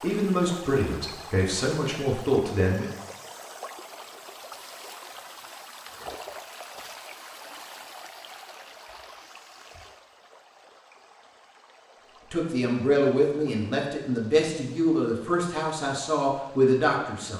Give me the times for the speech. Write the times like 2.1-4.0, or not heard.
0.0-2.9, 12.3-17.3.